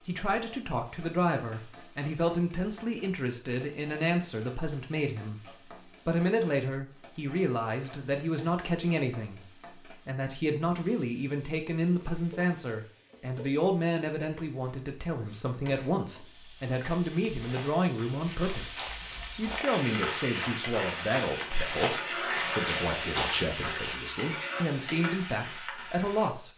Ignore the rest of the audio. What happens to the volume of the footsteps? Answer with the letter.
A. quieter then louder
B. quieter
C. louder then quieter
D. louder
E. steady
D.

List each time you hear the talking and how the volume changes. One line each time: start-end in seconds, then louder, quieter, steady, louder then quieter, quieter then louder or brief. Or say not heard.
0.1-26.5 steady.